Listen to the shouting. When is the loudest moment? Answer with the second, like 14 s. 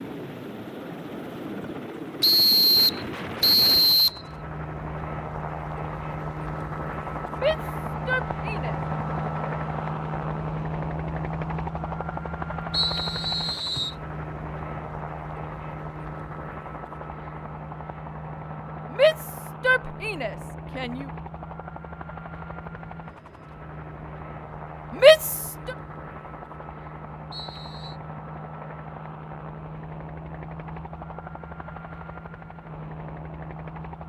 25 s.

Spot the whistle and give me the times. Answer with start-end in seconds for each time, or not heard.
2.2-4.2, 12.7-13.9, 27.3-27.9.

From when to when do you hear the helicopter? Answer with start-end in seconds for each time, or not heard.
0.0-34.0.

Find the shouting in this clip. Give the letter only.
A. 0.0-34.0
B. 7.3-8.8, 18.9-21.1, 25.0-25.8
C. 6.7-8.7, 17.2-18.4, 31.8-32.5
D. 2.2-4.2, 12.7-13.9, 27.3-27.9
B.